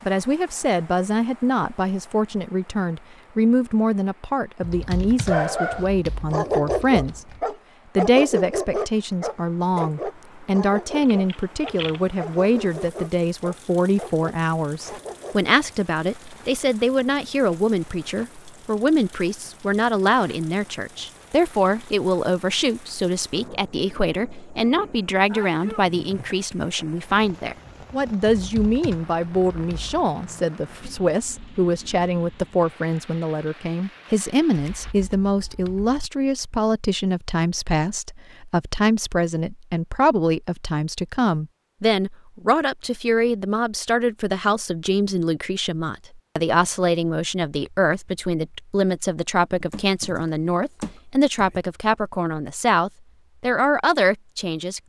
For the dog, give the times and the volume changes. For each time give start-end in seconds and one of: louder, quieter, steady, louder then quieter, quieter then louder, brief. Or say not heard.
5.2-15.5 quieter.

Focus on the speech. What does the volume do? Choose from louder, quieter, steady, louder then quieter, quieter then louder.
steady.